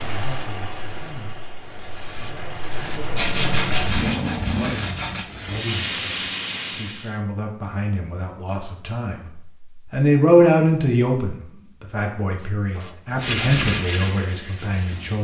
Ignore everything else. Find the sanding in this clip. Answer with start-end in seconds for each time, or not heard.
3.1-5.2, 13.2-15.1.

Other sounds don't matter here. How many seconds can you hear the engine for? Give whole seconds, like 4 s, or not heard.
5 s.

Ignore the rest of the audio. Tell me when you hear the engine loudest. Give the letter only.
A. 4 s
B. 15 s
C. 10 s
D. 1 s
A.